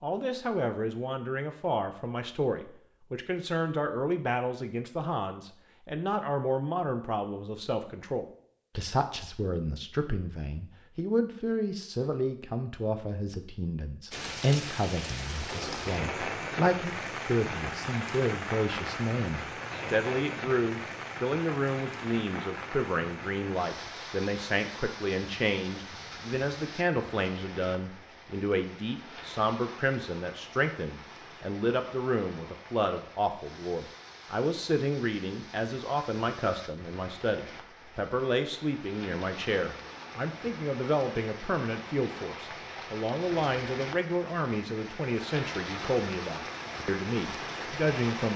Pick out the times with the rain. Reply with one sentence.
You can hear the rain from 14.1 to 48.3 s.